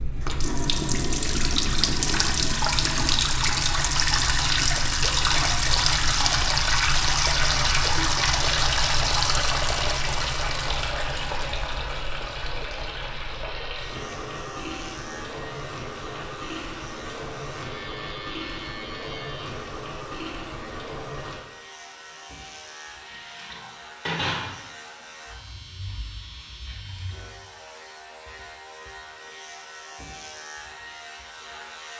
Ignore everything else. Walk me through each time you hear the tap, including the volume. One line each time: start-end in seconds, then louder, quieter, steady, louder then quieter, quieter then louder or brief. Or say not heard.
0.0-27.2 quieter.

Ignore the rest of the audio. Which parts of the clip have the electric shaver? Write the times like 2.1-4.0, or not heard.
13.8-31.9.